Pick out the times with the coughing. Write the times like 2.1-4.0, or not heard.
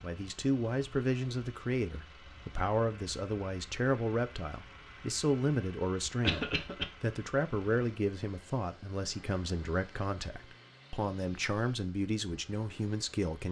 6.2-6.8.